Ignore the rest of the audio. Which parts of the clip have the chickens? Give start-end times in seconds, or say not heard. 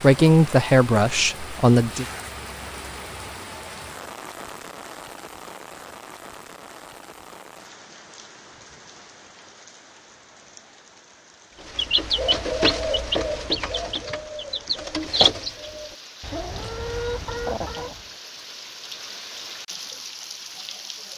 11.6-18.1.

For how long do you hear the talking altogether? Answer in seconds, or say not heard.
2 s.